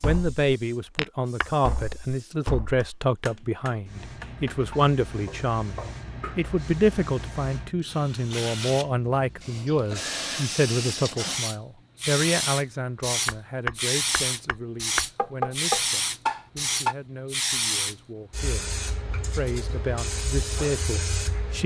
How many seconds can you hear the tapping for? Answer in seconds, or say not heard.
10 s.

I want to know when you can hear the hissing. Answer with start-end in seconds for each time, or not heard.
0.0-21.6.